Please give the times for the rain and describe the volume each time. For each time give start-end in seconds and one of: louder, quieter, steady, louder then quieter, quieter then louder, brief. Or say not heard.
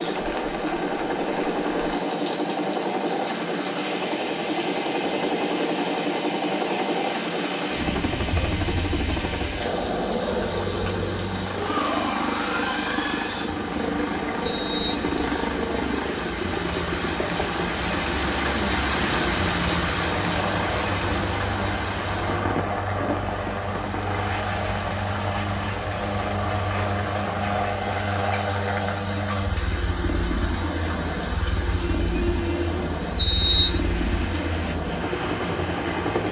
0.0-36.2 louder then quieter.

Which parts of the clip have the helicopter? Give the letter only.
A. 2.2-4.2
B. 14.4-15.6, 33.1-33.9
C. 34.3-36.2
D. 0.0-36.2
D.